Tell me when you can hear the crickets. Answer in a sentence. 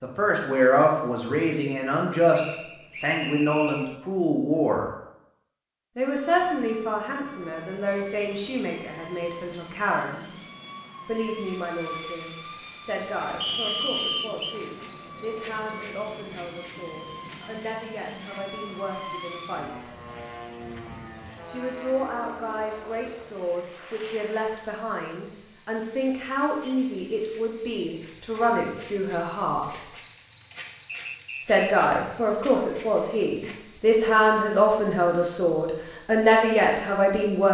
You can hear the crickets from 11.4 to 37.4 s.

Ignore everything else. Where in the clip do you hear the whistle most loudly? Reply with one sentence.
The volume of the whistle peaks at 14 seconds.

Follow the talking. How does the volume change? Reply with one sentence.
The volume of the talking goes down, then up.